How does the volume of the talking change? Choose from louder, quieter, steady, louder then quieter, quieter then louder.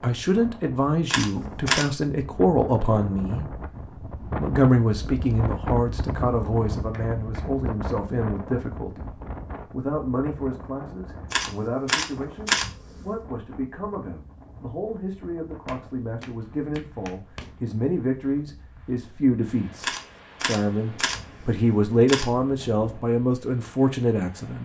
quieter then louder.